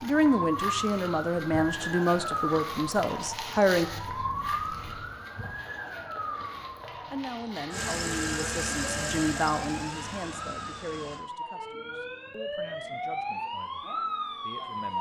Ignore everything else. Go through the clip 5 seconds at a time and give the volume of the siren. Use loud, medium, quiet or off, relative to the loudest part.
loud, medium, loud.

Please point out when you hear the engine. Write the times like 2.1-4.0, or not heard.
7.7-11.2.